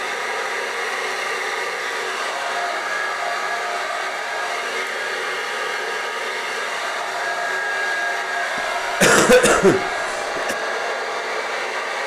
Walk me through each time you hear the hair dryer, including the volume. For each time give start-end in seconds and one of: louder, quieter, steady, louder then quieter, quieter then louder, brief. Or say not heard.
0.0-12.0 steady.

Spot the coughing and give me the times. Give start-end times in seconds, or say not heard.
8.6-10.6.